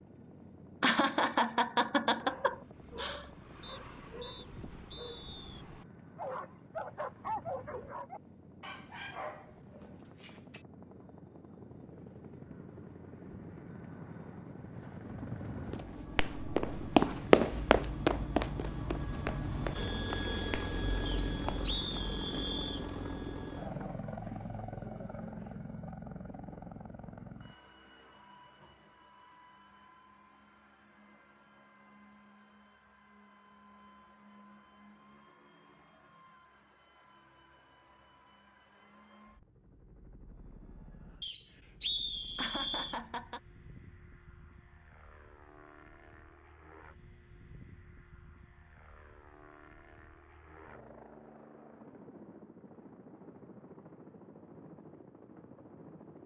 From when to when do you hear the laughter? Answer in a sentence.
You can hear the laughter from 0.8 to 3.2 s and from 42.4 to 43.4 s.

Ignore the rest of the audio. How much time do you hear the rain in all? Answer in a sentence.
The rain can't be heard in this clip.